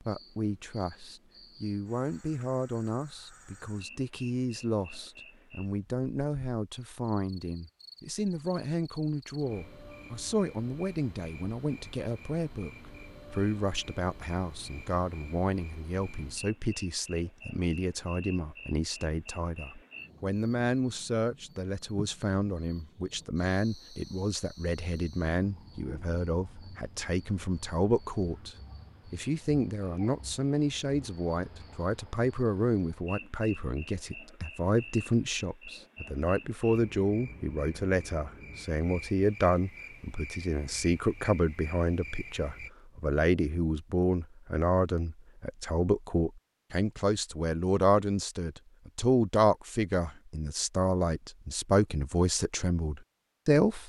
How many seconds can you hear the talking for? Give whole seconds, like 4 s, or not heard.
54 s.